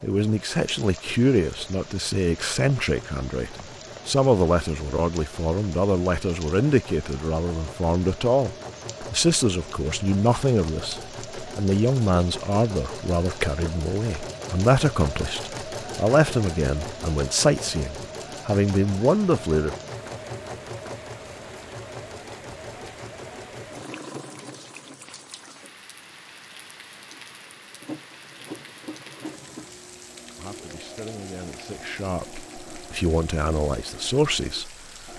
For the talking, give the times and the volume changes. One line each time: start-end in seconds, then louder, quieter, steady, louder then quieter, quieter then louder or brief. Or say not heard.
0.0-19.8 steady
30.4-35.1 louder.